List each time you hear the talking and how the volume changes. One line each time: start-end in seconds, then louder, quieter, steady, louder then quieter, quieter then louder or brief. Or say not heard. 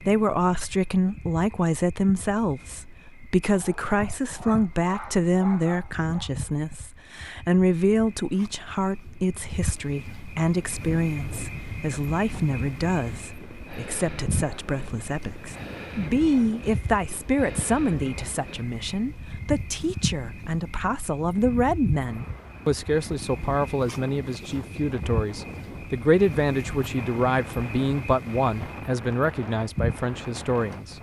0.0-30.9 steady.